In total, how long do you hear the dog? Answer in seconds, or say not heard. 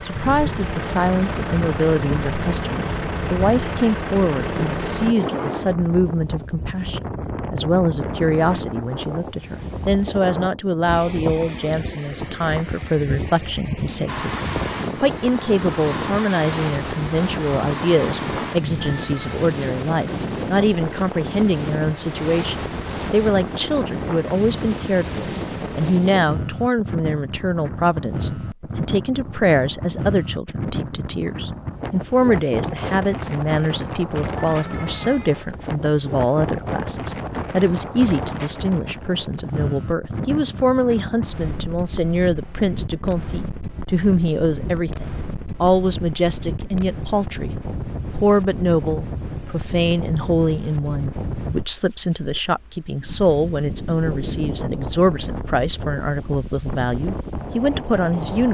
not heard.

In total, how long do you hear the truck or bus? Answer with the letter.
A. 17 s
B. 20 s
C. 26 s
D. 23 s
A.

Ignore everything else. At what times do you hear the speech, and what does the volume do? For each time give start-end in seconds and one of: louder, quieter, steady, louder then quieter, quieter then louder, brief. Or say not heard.
0.0-58.4 steady.